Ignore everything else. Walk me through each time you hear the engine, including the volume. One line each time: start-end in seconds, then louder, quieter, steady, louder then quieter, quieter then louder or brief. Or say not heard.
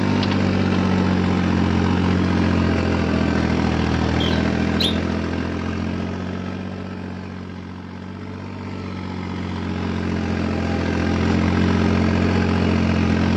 0.0-13.3 quieter then louder.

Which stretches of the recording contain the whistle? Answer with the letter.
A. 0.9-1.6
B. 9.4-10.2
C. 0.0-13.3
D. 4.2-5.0
D.